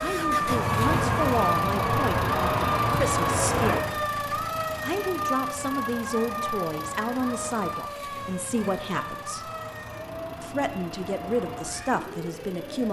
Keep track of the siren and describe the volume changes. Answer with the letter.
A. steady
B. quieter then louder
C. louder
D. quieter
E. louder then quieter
D.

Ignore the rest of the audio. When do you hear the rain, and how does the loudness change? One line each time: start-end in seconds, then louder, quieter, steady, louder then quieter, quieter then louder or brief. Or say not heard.
0.0-12.8 quieter.